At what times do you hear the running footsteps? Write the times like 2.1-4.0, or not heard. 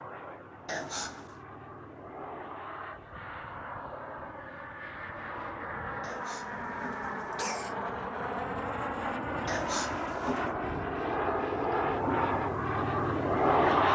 not heard.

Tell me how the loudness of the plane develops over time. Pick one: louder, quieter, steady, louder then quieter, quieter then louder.
louder.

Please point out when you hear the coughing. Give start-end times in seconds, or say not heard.
0.7-1.4, 6.0-7.8, 9.4-10.6.